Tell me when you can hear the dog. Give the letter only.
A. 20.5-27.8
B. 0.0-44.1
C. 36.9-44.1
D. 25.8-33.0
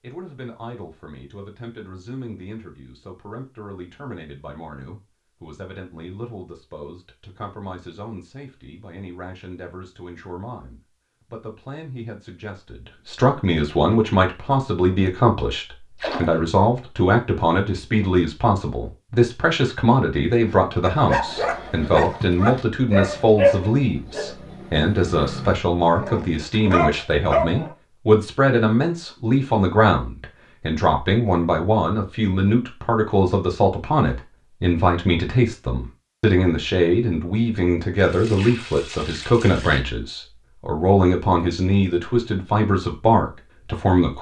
A.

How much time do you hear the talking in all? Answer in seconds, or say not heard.
44 s.